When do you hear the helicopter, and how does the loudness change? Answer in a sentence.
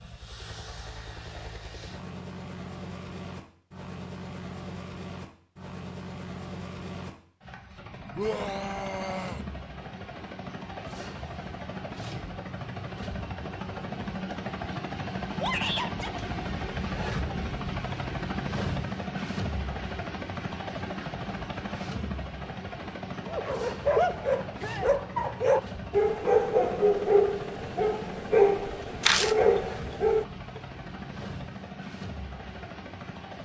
You can hear the helicopter from 0.0 to 33.3 s, getting louder then quieter.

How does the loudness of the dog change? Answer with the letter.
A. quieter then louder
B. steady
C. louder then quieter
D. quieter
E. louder
B.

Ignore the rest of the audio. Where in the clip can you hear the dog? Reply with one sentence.
You can hear the dog from 23.2 to 30.6 s.